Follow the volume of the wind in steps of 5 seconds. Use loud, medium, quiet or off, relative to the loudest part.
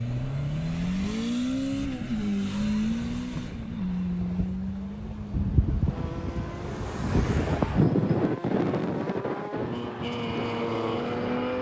quiet, loud, medium.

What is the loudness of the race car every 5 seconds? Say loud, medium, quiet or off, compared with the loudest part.
loud, medium, loud.